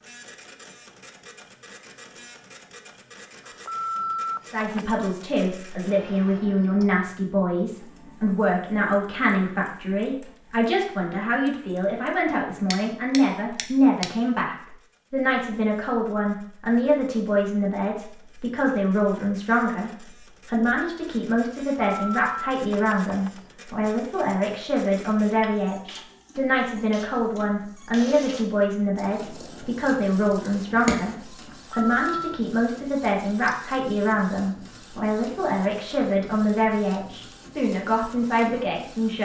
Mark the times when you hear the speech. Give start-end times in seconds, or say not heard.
4.5-39.2.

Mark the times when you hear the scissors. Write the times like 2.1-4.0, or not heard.
12.7-14.1, 28.9-31.0.